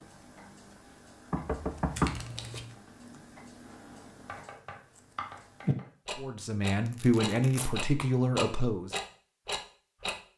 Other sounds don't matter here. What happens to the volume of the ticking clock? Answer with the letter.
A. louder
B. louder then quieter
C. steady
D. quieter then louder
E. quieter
A.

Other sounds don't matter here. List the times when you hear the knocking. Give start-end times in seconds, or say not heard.
1.3-2.6.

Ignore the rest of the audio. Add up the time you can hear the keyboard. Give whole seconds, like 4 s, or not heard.
2 s.